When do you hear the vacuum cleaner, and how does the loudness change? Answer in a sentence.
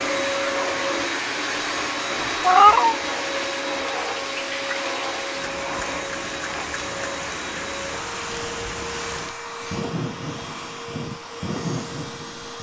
You can hear the vacuum cleaner from 0.0 to 12.5 s, getting quieter.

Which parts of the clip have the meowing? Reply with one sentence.
You can hear the meowing from 2.4 to 3.0 s.